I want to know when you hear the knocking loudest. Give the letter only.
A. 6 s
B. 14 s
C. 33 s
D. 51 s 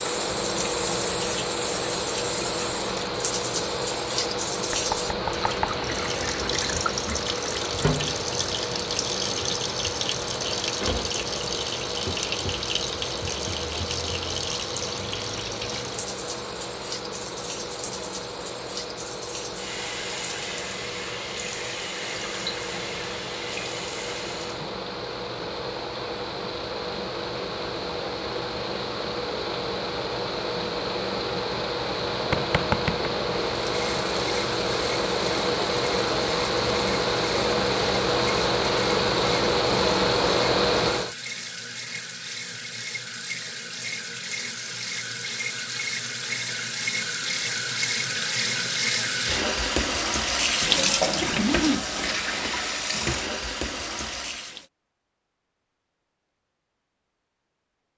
C.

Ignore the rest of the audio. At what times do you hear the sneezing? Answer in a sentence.
The sneezing can't be heard in this clip.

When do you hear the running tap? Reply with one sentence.
You can hear the running tap from 0.0 to 24.8 s and from 33.5 to 54.6 s.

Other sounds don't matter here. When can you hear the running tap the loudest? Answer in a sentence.
The loudest moment of the running tap is at 51 seconds.